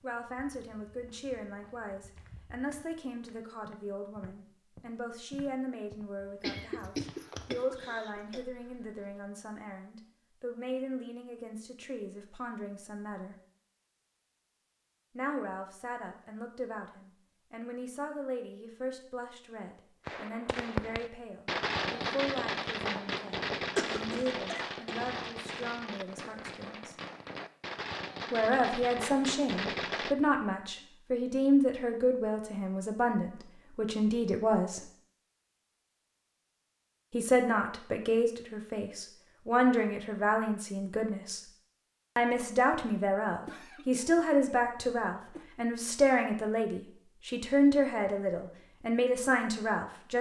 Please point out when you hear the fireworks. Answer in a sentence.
The fireworks can be heard from 20.1 to 30.1 s.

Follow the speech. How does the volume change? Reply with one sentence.
The loudness of the speech goes up.